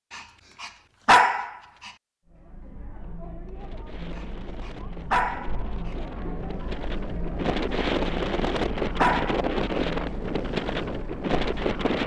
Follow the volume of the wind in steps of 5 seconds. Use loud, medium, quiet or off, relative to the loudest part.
quiet, loud, loud.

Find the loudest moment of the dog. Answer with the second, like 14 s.
1 s.